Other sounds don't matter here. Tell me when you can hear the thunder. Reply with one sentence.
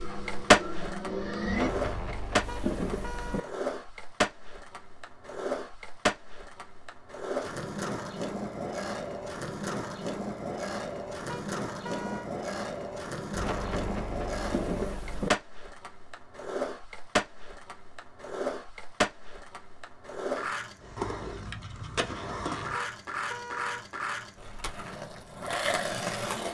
The thunder can be heard from 1.4 to 3.4 s and from 13.3 to 15.3 s.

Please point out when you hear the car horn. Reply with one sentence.
You can hear the car horn from 2.5 to 3.5 s, from 11.2 to 12.3 s and from 22.7 to 23.9 s.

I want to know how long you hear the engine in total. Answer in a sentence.
The engine can be heard for 2 seconds in total.